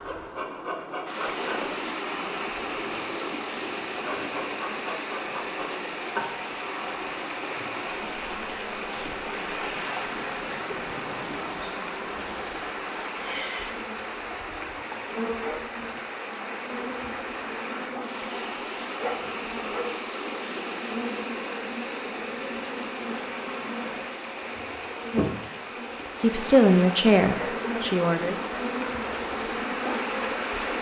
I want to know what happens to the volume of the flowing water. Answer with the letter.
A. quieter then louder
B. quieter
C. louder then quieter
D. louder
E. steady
E.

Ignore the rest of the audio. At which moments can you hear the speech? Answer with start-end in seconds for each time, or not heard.
26.1-28.4.